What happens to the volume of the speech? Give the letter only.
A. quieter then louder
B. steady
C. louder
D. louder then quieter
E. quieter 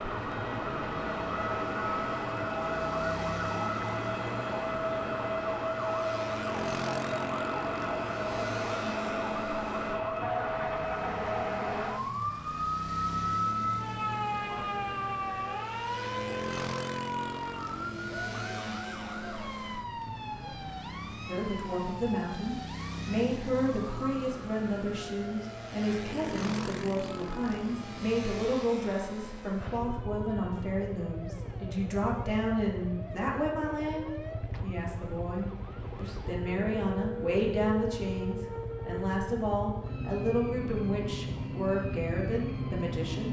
B.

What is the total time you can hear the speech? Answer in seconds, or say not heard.
22 s.